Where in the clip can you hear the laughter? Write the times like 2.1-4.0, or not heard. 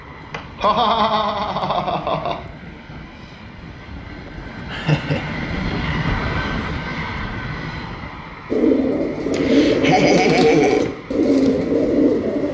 0.3-2.4, 4.7-5.8, 9.3-10.9.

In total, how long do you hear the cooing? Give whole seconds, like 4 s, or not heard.
4 s.